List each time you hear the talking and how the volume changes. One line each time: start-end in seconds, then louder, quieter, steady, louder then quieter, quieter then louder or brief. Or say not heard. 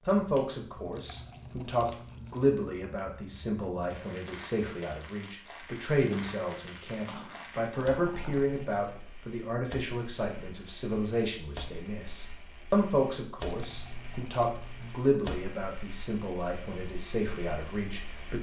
0.1-18.3 steady.